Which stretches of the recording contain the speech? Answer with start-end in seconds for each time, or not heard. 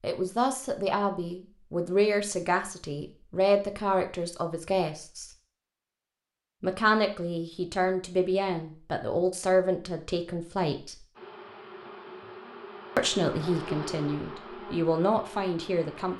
0.0-5.3, 6.6-11.1, 12.9-16.1.